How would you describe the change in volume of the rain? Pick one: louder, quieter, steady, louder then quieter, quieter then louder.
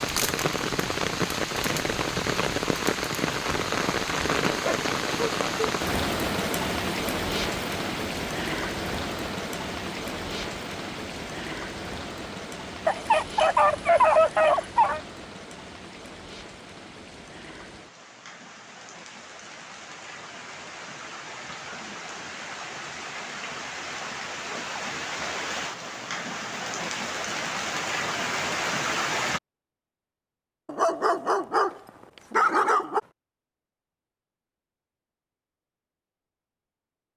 quieter then louder.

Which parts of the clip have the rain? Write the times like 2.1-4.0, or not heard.
0.0-29.4.